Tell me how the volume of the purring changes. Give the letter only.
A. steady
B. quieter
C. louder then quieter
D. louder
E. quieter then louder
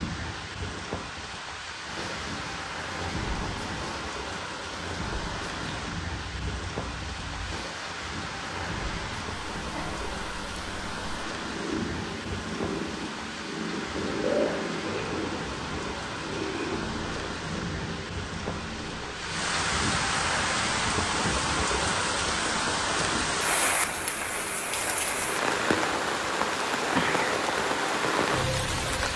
C.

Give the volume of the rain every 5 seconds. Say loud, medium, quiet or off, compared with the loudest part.
medium, medium, medium, medium, loud, loud.